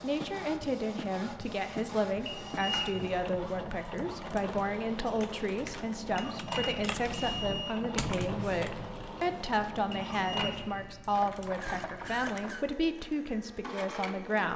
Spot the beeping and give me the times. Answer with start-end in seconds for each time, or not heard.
2.2-3.1, 6.2-7.8, 9.9-10.8.